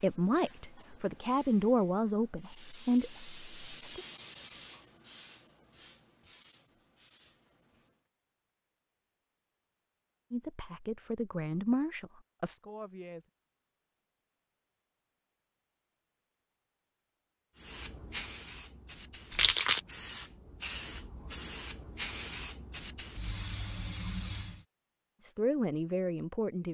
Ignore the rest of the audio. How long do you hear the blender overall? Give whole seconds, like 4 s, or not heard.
not heard.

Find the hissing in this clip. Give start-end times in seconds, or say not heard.
0.0-8.0, 17.6-24.6.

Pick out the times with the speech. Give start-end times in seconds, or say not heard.
0.0-4.0, 10.3-13.2, 25.2-26.6.